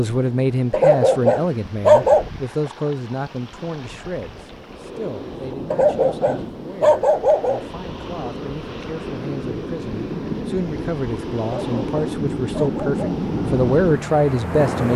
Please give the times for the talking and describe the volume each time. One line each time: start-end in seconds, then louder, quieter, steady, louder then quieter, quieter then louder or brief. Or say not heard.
0.0-14.9 quieter then louder.